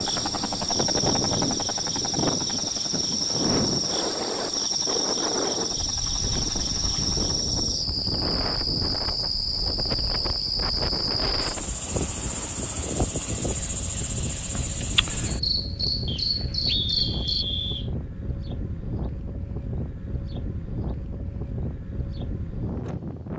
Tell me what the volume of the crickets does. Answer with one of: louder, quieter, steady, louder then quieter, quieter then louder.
steady.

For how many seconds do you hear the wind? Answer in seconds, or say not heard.
23 s.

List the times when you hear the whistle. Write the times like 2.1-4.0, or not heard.
16.1-17.9.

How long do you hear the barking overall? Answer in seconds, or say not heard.
not heard.